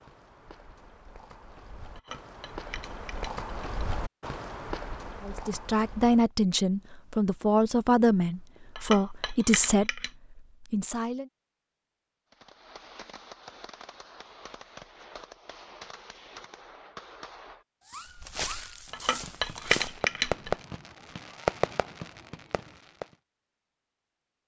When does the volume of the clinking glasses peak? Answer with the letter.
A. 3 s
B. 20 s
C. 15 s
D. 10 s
B.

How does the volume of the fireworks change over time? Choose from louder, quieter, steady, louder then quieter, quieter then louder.
louder.